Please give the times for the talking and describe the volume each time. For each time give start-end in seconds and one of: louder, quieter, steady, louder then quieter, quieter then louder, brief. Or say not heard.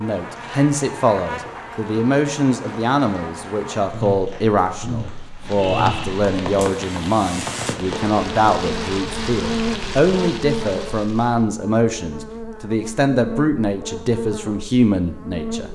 0.0-15.6 steady.